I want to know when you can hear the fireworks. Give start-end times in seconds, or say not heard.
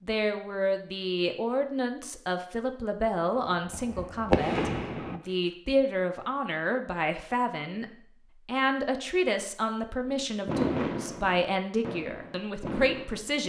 3.5-5.2, 10.4-13.3.